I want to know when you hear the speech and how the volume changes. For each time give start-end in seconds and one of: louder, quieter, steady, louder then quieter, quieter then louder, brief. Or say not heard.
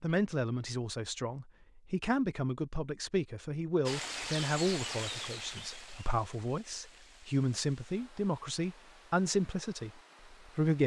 0.0-10.8 steady.